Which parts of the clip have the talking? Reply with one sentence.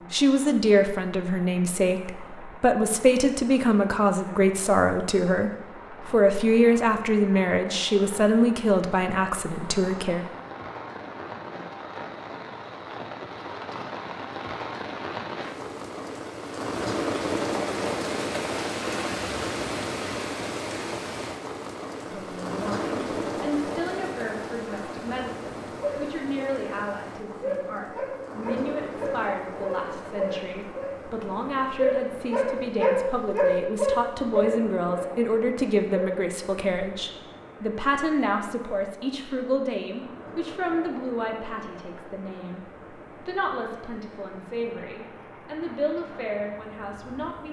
The talking can be heard from 0.1 to 10.2 s and from 22.1 to 47.4 s.